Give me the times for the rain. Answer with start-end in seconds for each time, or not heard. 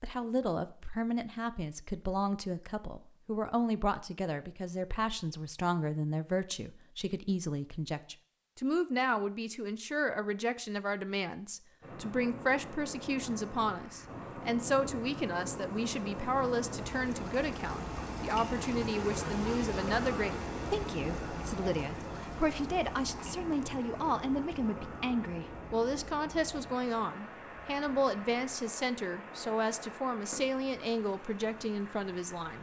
11.8-32.5.